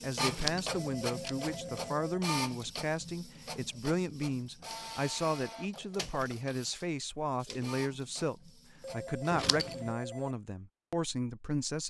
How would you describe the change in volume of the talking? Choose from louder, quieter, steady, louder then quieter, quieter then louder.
steady.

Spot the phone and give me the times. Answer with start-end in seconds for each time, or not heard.
0.8-2.2, 8.8-10.3.